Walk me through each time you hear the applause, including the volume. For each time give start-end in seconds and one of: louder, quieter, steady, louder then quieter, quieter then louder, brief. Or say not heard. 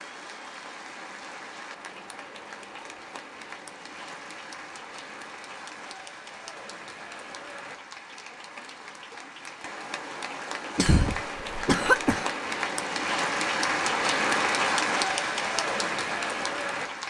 0.0-17.0 louder.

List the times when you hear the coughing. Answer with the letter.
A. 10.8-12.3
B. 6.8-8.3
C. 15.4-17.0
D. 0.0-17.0
A.